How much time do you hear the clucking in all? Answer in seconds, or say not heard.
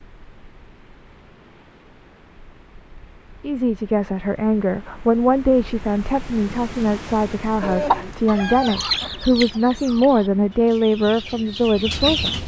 5 s.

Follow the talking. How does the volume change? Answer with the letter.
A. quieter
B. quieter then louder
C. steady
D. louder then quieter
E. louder
C.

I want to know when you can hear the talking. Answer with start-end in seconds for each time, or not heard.
3.4-12.4.